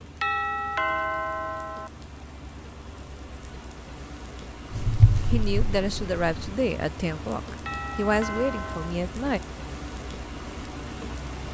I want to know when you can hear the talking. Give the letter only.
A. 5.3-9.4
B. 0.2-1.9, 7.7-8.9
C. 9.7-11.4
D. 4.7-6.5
A.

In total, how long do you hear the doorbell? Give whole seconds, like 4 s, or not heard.
3 s.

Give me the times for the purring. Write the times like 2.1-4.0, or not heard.
4.7-6.5.